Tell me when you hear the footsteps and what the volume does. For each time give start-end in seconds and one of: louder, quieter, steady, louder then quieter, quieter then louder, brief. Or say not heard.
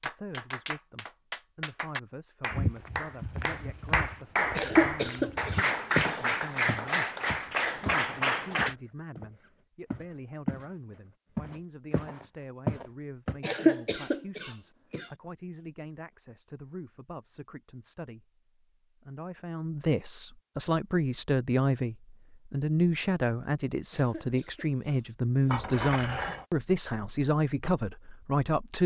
2.5-10.7 louder then quieter
11.3-13.3 brief.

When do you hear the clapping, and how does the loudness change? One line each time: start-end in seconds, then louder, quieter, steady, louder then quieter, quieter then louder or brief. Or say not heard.
0.0-8.8 louder.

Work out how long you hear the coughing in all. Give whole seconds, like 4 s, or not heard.
5 s.